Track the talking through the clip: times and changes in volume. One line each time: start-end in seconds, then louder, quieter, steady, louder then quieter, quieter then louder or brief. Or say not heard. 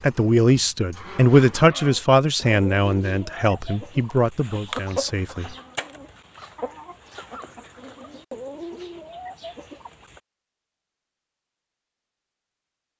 0.0-5.5 quieter.